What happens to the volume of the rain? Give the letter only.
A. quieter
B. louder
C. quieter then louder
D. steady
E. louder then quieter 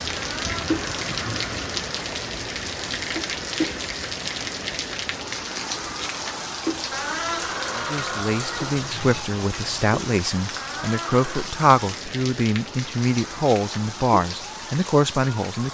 A.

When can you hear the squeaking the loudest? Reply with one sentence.
The volume of the squeaking peaks at 7 seconds.